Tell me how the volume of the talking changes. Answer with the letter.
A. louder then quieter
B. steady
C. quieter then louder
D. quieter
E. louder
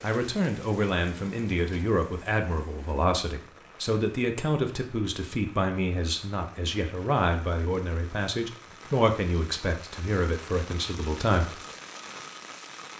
B.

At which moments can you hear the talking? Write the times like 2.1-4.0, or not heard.
0.0-11.6.